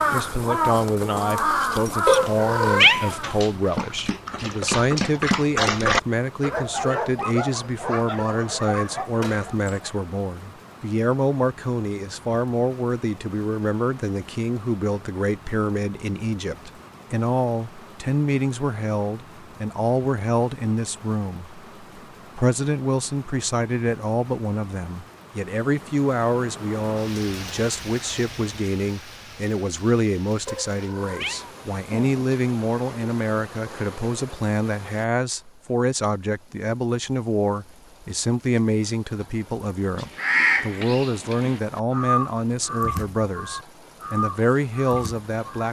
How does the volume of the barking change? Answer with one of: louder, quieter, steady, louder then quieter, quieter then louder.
louder then quieter.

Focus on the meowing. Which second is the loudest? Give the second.
3 s.